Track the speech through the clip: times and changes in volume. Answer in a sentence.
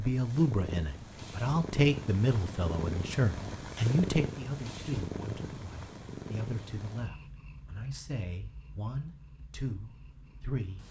You can hear the speech from 0.0 to 10.8 s, getting quieter.